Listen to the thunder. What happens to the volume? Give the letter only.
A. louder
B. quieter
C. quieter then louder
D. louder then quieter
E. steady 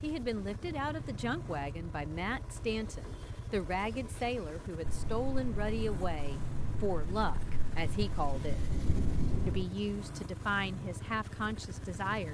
A.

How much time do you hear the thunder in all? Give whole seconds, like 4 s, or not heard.
5 s.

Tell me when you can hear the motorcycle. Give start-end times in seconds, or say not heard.
0.0-12.2.